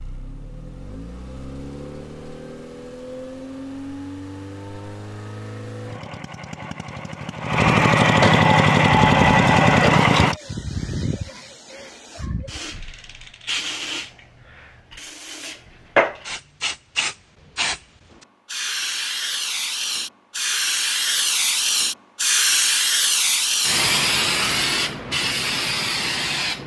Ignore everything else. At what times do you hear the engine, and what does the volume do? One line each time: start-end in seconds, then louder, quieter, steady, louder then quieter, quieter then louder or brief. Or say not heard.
0.0-10.3 louder.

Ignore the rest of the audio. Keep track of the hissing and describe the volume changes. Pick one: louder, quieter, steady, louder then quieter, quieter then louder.
louder.